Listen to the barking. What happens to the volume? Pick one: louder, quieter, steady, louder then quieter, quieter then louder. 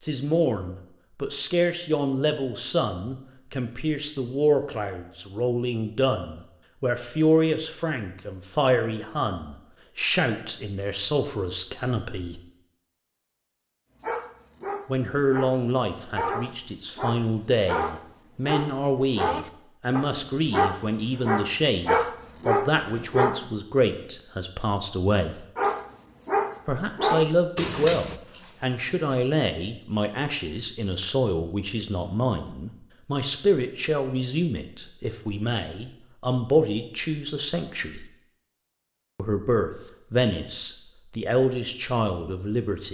louder then quieter.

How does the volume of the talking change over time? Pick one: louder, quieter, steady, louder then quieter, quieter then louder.
steady.